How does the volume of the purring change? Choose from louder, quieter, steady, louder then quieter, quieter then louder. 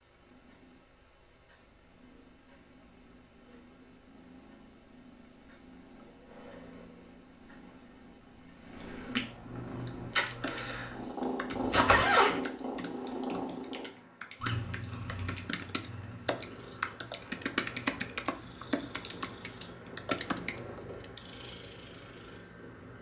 louder then quieter.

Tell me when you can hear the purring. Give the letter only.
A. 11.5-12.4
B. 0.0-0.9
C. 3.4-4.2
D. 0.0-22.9
D.